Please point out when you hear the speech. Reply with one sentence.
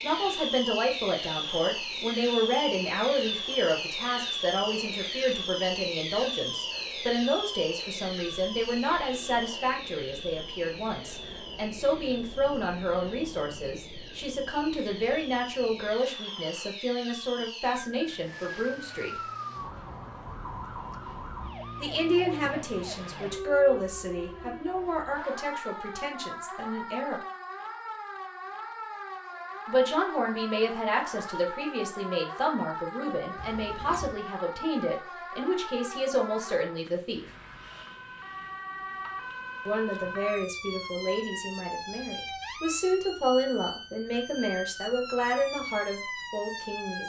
The speech can be heard from 0.0 to 19.2 s, from 21.8 to 27.2 s, from 29.6 to 37.2 s and from 39.6 to 47.0 s.